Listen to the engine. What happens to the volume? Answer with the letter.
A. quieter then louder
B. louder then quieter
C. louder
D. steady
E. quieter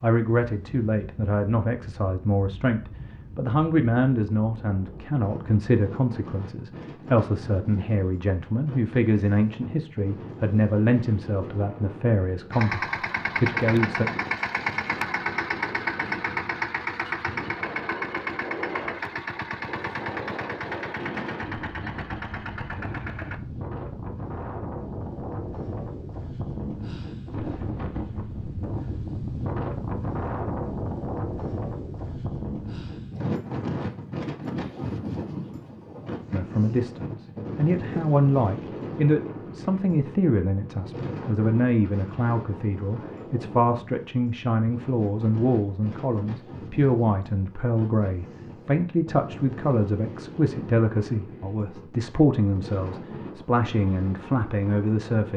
E.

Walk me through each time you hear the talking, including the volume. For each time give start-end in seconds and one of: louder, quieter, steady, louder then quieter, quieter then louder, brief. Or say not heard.
0.0-14.1 steady
36.3-55.3 steady.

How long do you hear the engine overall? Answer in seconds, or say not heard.
11 s.